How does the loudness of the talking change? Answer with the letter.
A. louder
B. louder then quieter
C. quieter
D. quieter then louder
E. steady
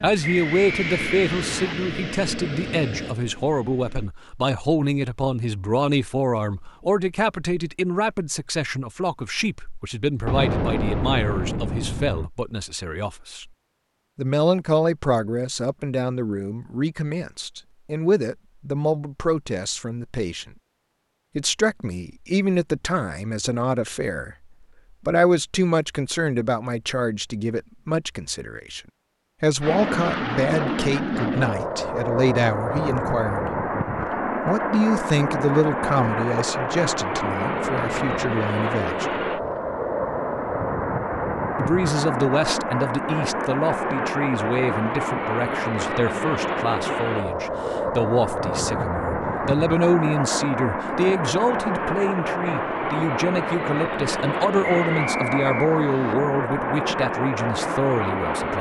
E.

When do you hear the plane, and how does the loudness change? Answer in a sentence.
The plane can be heard from 0.0 to 4.1 s, getting quieter; and from 29.6 to 58.5 s, at a steady volume.